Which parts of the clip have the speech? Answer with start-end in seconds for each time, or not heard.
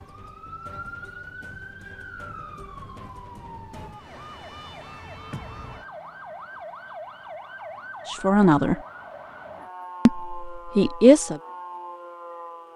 8.1-8.8, 10.1-11.4.